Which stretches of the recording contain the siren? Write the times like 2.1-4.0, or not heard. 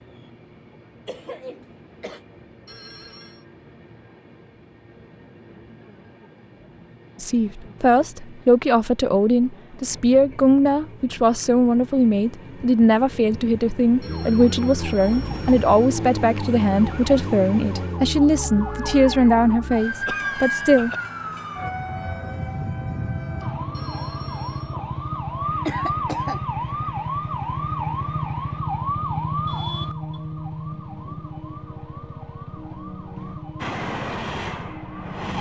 14.1-35.3.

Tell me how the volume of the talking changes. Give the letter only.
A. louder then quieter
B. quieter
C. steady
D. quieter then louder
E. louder
C.